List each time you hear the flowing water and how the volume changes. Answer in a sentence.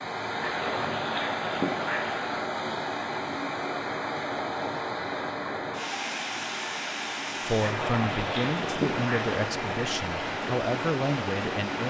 You can hear the flowing water from 0.0 to 11.8 s, at a steady volume.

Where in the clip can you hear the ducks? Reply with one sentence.
The ducks can be heard from 0.4 to 2.2 s and from 7.7 to 9.3 s.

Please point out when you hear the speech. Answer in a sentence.
The speech can be heard from 7.4 to 11.8 s.